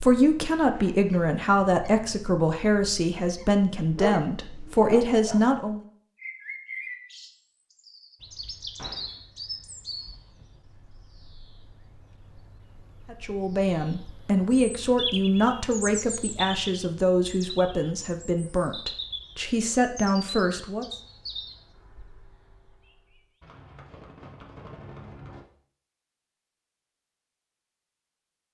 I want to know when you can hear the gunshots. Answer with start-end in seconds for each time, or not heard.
8.8-9.2, 23.4-25.4.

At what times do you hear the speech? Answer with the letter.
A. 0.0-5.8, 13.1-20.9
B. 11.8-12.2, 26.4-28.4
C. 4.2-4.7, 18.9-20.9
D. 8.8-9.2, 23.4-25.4
A.